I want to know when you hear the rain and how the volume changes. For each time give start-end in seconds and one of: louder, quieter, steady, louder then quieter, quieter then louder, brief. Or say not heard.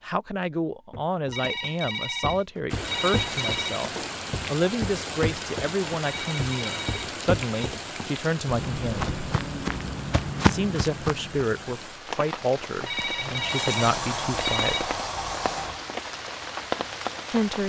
2.7-17.6 quieter then louder.